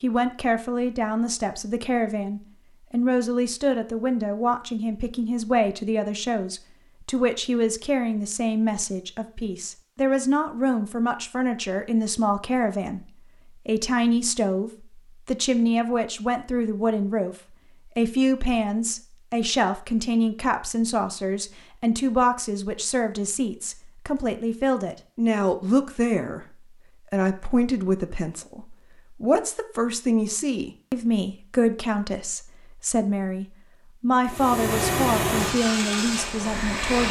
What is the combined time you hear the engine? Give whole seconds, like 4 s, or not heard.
3 s.